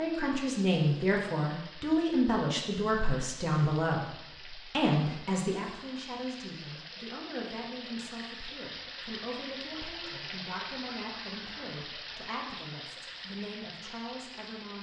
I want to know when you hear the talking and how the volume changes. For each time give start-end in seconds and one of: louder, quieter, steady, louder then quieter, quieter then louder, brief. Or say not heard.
0.0-14.7 quieter.